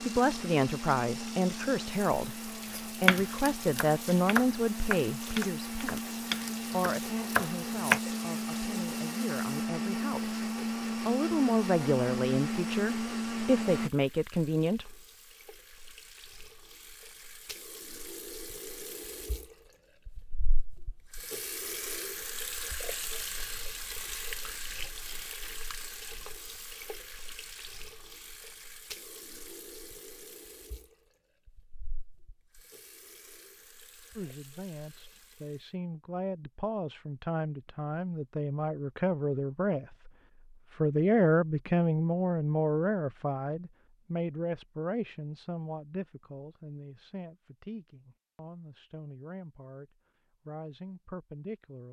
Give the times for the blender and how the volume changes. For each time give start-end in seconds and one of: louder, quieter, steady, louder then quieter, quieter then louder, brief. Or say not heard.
0.0-13.9 louder.